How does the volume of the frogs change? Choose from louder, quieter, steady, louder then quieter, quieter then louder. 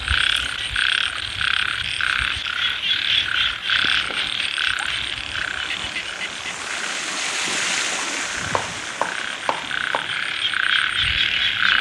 quieter then louder.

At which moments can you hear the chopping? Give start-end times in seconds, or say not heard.
8.3-10.1.